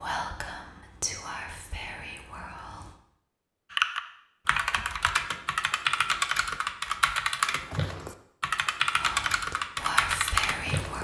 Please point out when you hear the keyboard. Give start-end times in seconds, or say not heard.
3.7-10.9.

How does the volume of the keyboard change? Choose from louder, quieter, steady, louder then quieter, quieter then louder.
steady.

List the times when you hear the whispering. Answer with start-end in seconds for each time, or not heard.
0.0-2.9, 8.9-10.9.